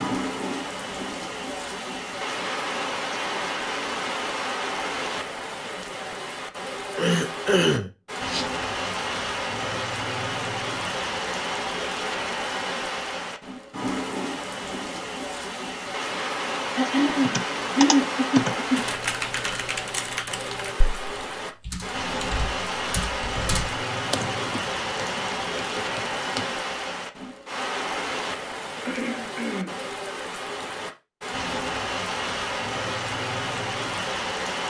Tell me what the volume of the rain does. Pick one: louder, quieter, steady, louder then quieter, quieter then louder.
steady.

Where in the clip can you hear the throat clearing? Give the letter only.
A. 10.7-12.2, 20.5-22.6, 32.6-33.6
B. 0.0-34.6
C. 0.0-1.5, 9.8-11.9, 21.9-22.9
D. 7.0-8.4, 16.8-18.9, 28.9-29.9
D.